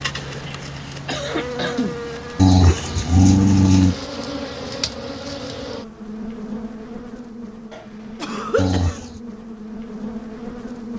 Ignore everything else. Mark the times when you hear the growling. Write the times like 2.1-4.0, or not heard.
2.4-4.0, 8.6-9.2.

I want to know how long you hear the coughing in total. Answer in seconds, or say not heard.
2 s.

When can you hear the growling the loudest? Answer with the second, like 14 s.
3 s.